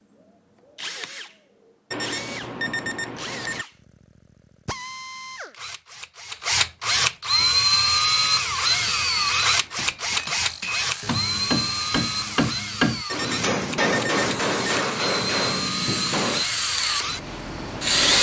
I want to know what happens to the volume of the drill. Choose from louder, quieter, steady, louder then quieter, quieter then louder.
louder then quieter.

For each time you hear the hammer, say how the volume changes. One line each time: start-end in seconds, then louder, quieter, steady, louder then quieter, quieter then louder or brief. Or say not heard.
7.3-16.4 louder.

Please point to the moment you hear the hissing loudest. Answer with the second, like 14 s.
18 s.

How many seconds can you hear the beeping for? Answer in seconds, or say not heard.
5 s.